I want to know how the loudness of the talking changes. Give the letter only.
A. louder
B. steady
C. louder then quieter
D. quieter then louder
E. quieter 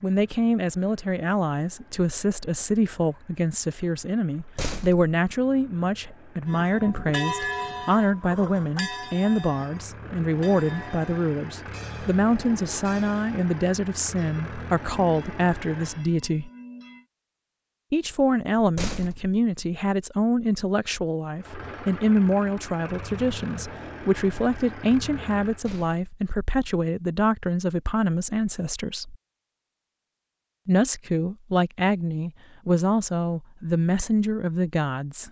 B.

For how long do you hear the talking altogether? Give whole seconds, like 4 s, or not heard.
32 s.